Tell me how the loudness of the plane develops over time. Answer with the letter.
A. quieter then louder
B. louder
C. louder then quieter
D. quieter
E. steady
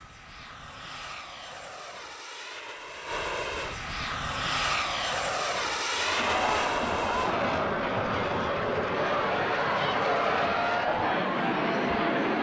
B.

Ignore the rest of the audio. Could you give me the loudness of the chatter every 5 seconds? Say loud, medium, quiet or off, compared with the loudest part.
off, loud, loud.